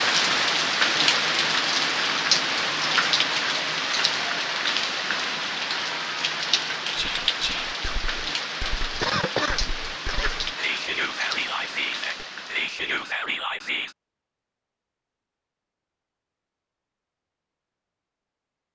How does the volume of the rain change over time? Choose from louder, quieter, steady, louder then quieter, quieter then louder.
quieter.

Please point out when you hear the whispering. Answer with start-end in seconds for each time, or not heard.
7.0-13.9.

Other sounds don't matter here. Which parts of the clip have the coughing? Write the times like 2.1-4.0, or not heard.
9.0-10.3.